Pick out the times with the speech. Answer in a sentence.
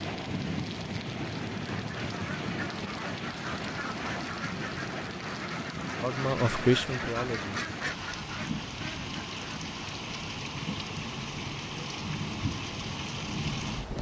You can hear the speech from 6.0 to 7.6 s.